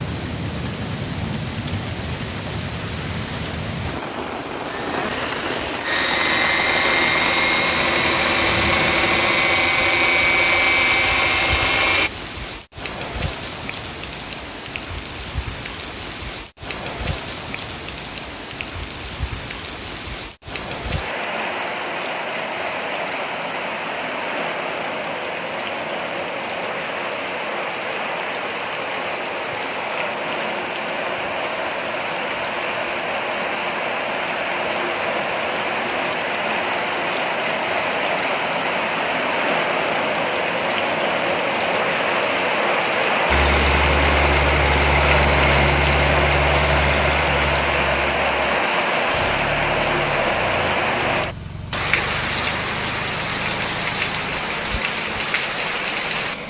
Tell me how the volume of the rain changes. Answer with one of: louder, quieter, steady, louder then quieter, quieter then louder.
louder.